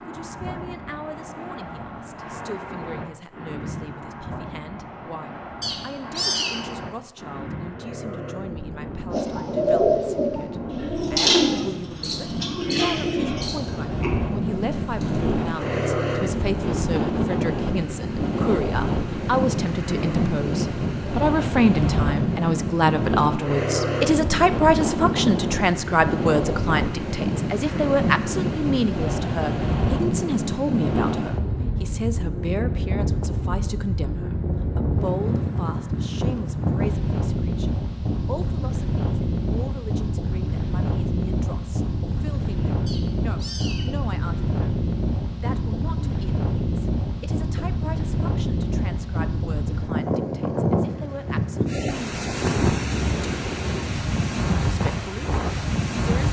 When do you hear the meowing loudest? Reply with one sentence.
The loudest moment of the meowing is at 6 seconds.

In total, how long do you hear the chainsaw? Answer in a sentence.
The chainsaw can't be heard in this clip.